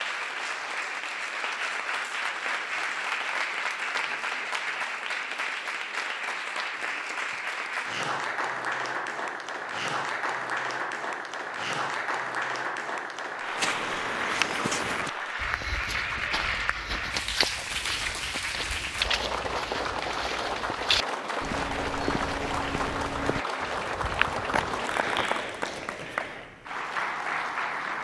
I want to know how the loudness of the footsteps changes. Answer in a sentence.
The loudness of the footsteps stays about the same.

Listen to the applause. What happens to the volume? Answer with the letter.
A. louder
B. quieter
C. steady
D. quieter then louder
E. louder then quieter
C.